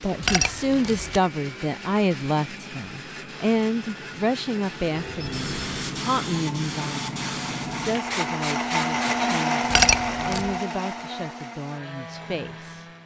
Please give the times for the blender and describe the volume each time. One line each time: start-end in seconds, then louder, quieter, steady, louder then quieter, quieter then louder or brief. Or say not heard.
0.0-13.0 louder then quieter.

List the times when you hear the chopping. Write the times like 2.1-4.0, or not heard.
not heard.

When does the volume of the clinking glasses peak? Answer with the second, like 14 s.
10 s.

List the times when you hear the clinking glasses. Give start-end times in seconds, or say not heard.
0.2-1.2, 9.7-10.5.